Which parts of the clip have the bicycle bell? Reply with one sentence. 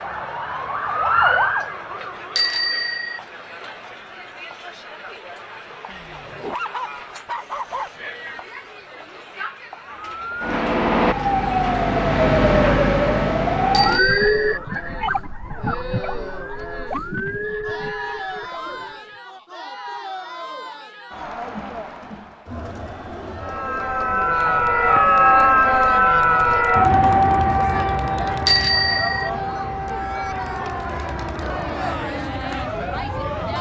You can hear the bicycle bell from 2.4 to 3.2 s, from 13.7 to 14.6 s and from 28.4 to 29.3 s.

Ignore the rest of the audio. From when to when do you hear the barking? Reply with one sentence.
The barking can be heard from 5.8 to 8.1 s.